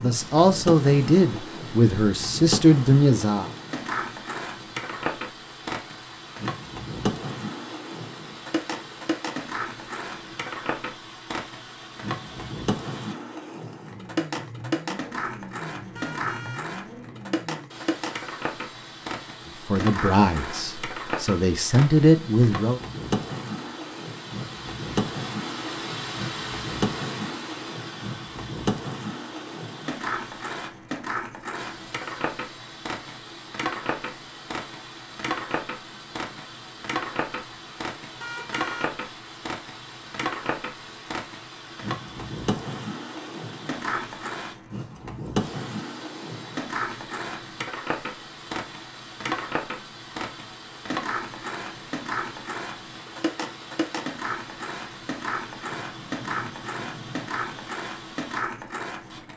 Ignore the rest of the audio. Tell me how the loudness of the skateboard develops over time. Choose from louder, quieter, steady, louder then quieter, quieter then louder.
steady.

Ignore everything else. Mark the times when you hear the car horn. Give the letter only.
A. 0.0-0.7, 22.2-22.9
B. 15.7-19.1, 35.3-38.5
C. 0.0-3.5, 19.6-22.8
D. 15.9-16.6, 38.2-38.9
D.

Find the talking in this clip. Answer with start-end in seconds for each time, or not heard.
0.0-3.5, 19.6-22.8.